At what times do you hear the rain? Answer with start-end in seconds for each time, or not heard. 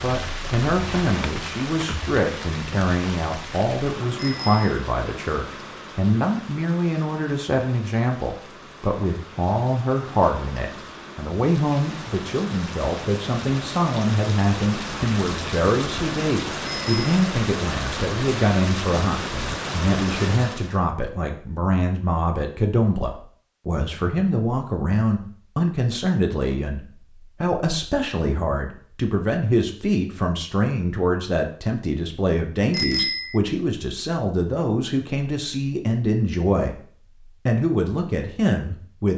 0.0-20.9.